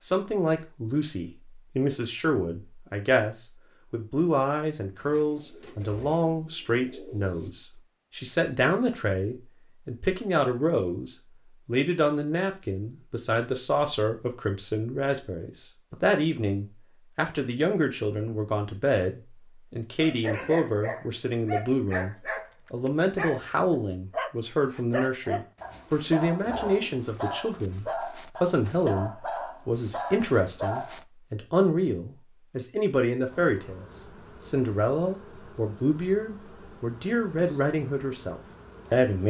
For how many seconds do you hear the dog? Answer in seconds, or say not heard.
11 s.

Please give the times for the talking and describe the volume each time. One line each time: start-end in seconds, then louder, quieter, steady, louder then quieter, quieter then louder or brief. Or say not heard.
0.0-39.2 steady.